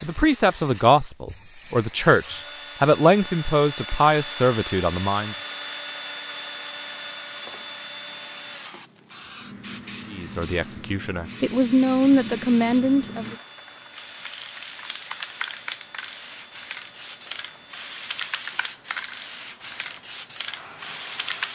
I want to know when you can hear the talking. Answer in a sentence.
You can hear the talking from 0.0 to 5.3 s and from 10.1 to 13.3 s.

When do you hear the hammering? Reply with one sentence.
You can't hear the hammering here.